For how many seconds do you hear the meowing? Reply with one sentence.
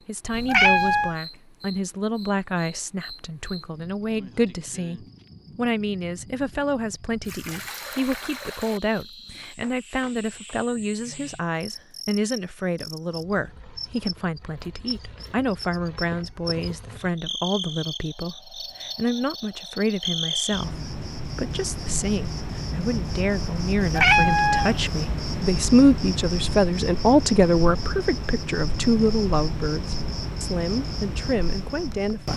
You can hear the meowing for 2 seconds altogether.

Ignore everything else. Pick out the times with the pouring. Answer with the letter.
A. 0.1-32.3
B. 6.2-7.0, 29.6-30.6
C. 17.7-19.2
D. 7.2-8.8
D.